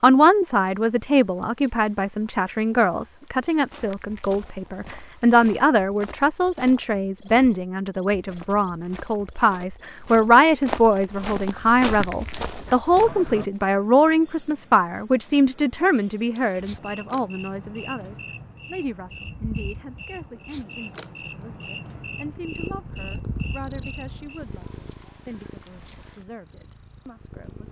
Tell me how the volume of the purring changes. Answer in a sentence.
The loudness of the purring goes down.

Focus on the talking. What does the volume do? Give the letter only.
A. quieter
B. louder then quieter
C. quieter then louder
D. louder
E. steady
A.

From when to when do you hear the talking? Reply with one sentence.
The talking can be heard from 0.0 to 27.6 s.